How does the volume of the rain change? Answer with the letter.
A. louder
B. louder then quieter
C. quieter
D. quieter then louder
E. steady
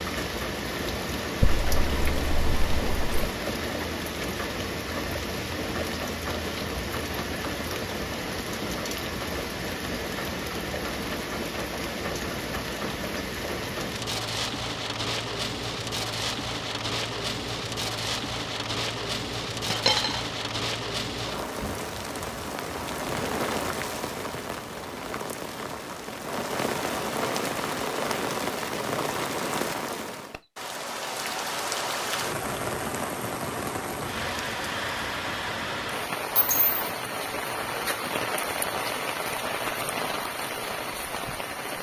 E.